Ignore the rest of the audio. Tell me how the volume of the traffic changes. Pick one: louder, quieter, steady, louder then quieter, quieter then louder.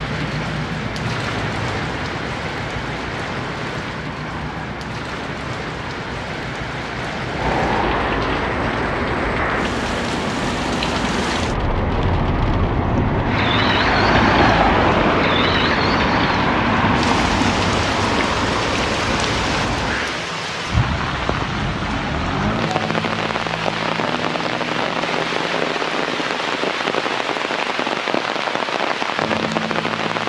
louder.